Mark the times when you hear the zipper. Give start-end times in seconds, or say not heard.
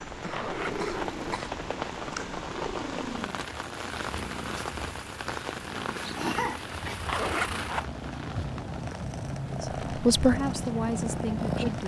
0.3-1.1, 7.0-7.8.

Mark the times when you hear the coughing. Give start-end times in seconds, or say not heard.
0.1-1.5, 6.2-7.0.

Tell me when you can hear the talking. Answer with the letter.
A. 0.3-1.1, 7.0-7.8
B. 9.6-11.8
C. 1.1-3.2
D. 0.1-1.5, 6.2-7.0
B.